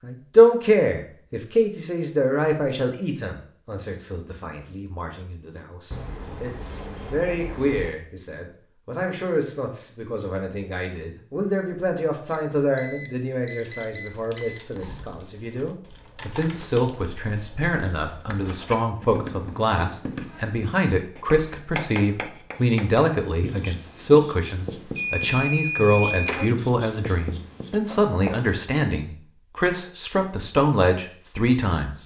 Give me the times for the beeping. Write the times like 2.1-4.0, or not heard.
5.9-7.9, 12.3-14.6, 24.9-26.5.